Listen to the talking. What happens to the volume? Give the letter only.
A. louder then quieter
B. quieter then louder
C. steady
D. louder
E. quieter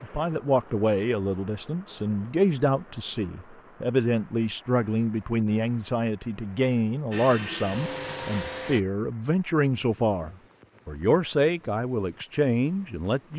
C.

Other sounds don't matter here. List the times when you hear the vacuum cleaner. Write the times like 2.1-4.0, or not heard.
7.1-8.8.